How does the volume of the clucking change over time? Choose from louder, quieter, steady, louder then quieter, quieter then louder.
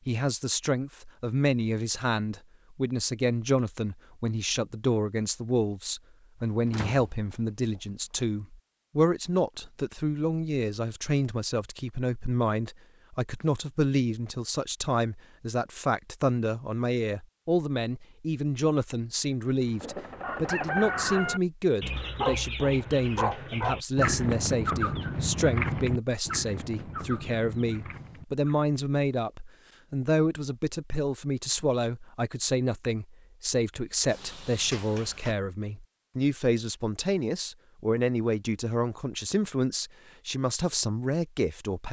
quieter.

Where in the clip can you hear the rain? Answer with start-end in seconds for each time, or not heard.
not heard.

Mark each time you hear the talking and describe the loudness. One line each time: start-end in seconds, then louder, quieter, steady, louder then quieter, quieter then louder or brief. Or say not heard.
0.1-41.8 steady.